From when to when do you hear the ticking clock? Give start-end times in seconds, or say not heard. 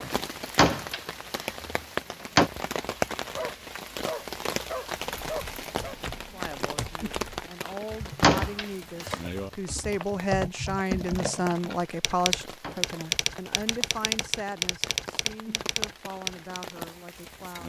not heard.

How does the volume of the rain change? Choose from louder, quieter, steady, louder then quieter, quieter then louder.
quieter.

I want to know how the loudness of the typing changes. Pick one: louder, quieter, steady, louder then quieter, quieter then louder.
louder.